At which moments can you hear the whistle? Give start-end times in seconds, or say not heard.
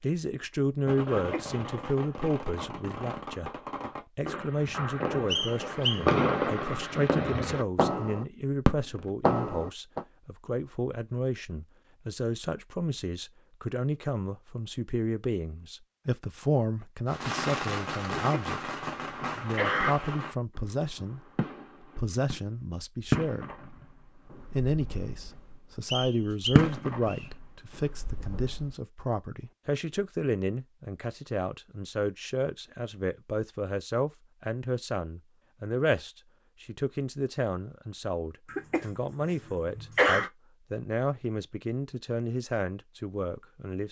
5.3-6.0, 25.9-27.3.